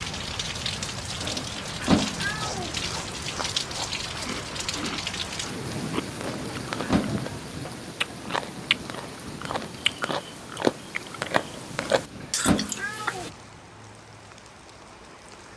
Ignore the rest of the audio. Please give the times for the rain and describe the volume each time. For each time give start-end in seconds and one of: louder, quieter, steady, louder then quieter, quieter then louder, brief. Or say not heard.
0.0-15.5 quieter.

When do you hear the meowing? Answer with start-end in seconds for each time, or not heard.
1.2-2.8, 6.2-7.2, 11.8-13.3.